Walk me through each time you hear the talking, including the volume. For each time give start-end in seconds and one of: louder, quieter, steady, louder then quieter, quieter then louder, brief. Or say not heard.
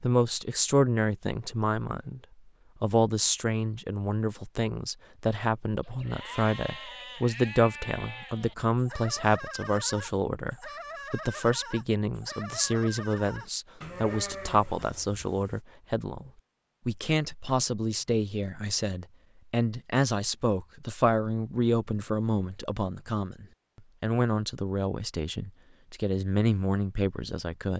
0.0-2.2 brief
2.8-27.7 steady.